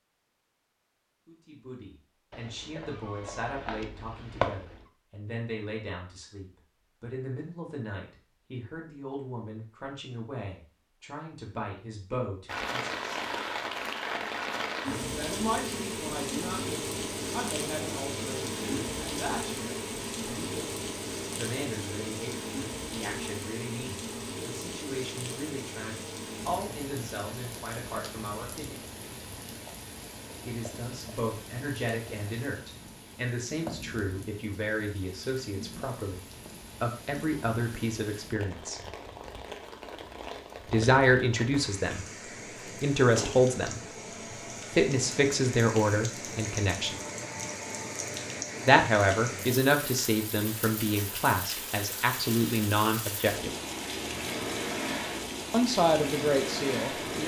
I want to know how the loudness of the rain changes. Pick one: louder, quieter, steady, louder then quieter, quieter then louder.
quieter then louder.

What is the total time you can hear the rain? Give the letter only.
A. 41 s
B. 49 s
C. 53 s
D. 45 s
D.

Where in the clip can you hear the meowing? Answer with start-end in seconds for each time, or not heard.
2.3-4.9.